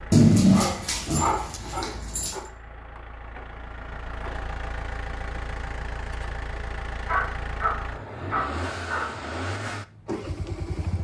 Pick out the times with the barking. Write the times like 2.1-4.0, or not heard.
0.1-2.5, 7.0-9.2.